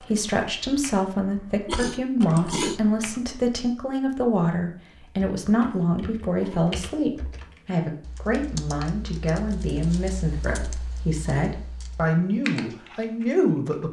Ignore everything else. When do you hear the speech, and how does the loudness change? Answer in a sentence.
The speech can be heard from 0.0 to 13.8 s, at a steady volume.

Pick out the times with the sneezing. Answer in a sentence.
You can hear the sneezing from 1.6 to 2.8 s, from 5.5 to 6.7 s and from 10.4 to 11.6 s.